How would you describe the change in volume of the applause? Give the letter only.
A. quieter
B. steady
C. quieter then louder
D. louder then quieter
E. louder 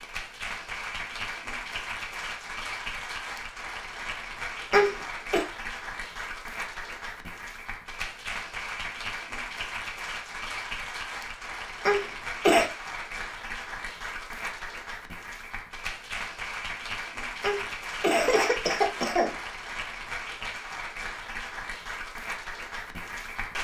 B.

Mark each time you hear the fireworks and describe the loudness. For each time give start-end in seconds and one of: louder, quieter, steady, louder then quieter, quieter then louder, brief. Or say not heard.
not heard.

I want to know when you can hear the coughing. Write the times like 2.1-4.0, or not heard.
4.7-5.5, 11.8-12.7, 17.4-19.3.